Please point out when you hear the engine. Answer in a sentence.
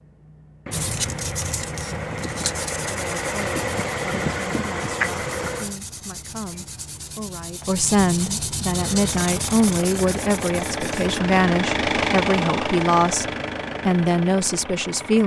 You can hear the engine from 0.0 to 5.8 s and from 8.7 to 15.2 s.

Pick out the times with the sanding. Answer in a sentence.
The sanding can be heard from 0.7 to 11.2 s.